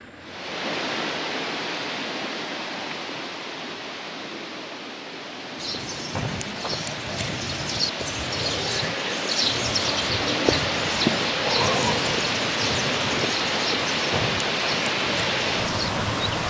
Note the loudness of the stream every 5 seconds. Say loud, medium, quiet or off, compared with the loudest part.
medium, medium, loud, loud.